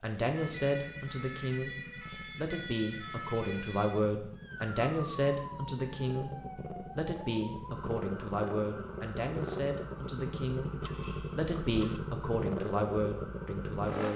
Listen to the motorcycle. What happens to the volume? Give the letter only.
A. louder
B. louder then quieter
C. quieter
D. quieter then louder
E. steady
A.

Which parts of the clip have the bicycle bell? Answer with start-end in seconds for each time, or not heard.
10.8-12.0.